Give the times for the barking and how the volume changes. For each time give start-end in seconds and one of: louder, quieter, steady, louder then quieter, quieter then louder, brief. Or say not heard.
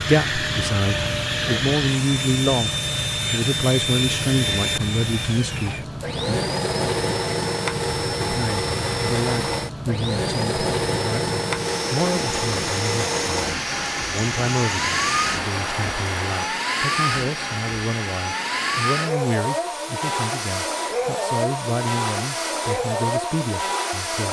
not heard.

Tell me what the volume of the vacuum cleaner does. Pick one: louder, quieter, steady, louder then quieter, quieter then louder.
steady.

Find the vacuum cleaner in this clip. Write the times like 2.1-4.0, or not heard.
0.0-24.2.